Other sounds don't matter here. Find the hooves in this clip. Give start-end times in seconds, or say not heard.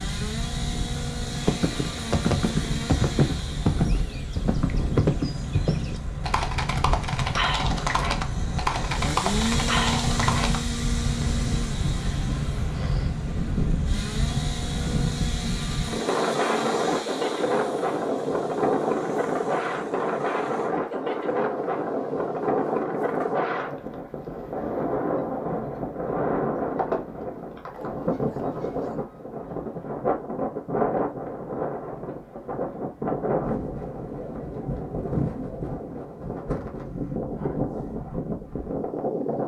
1.4-10.6.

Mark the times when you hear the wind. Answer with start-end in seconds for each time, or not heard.
0.0-39.4.